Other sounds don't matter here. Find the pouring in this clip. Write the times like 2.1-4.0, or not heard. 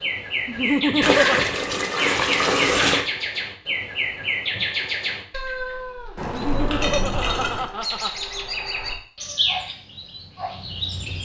1.0-3.0, 6.2-7.7.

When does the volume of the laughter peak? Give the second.
1 s.